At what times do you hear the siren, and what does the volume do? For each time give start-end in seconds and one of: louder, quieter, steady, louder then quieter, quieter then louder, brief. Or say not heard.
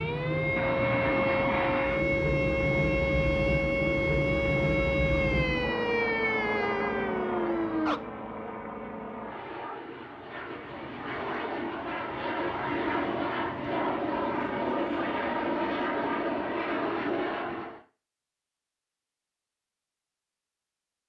0.0-8.0 steady.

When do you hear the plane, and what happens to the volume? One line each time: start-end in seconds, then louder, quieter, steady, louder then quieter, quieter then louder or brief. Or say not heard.
0.0-17.8 quieter then louder.